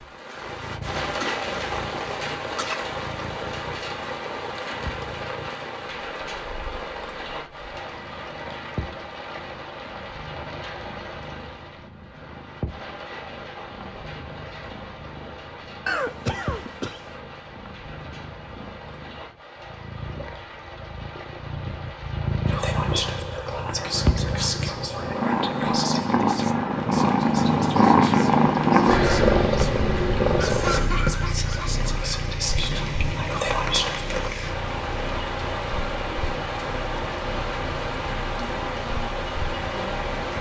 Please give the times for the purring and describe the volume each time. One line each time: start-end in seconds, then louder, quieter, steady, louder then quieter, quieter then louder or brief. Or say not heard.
0.1-40.3 louder then quieter.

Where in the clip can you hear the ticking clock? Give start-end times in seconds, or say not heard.
not heard.